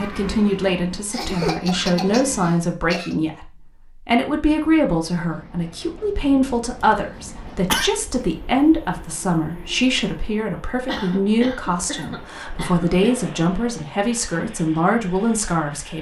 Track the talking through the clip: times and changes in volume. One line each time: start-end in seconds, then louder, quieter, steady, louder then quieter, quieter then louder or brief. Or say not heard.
0.0-15.9 steady.